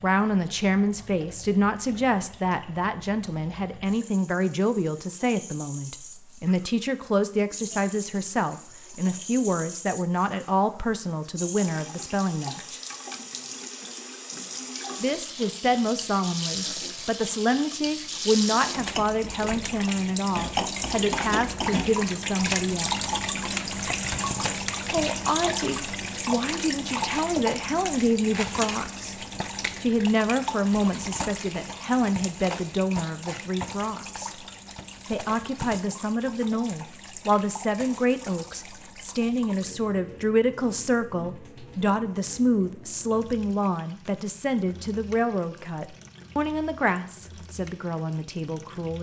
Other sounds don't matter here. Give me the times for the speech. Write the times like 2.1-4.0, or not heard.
0.0-12.8, 15.0-22.9, 24.9-29.2, 29.8-34.3, 35.1-48.9.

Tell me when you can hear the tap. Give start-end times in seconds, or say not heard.
0.0-48.9.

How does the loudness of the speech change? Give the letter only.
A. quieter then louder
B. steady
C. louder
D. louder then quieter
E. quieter
B.